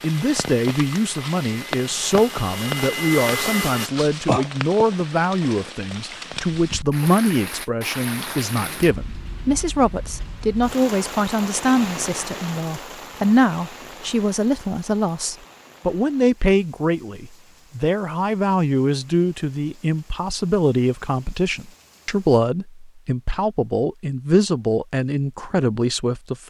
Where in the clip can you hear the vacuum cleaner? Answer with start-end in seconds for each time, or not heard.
0.0-3.9.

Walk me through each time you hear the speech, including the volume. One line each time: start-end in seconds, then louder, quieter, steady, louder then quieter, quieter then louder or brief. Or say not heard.
0.0-26.4 steady.